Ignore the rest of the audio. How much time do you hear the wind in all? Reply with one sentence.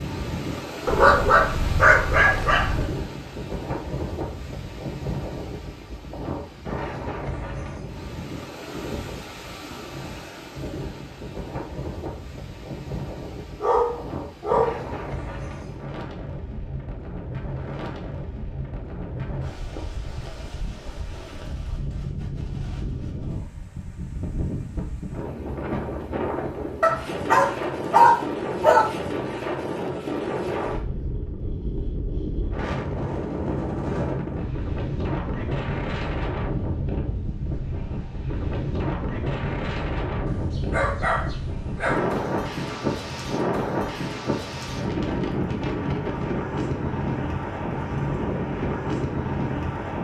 You can hear the wind for 50 seconds altogether.